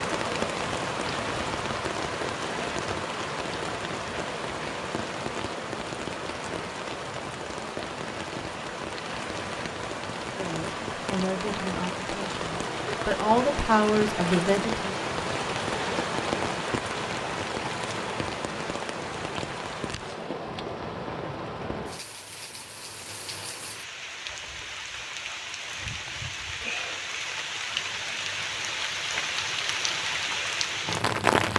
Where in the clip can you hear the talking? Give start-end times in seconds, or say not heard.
10.3-14.9.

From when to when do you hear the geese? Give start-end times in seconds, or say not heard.
not heard.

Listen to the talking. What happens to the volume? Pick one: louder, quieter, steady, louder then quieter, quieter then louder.
quieter then louder.